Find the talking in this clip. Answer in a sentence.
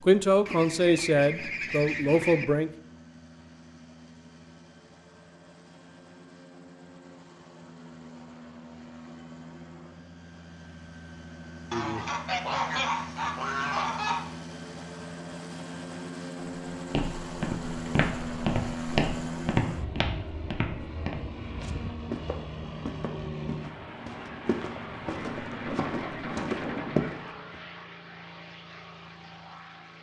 The talking can be heard from 0.0 to 2.7 s.